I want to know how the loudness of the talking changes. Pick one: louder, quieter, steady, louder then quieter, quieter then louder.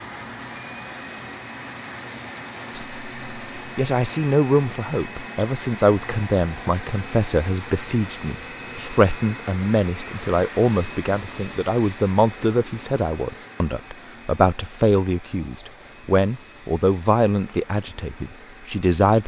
steady.